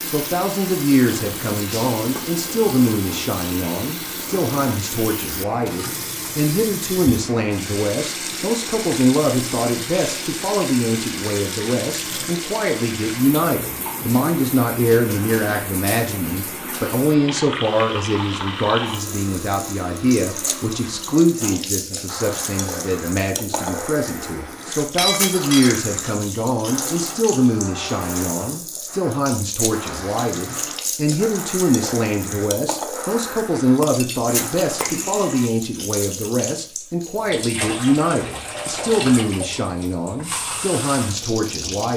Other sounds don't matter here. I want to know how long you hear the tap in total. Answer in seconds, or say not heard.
42 s.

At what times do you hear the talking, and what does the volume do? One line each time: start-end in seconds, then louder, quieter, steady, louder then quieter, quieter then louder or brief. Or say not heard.
0.0-41.9 steady.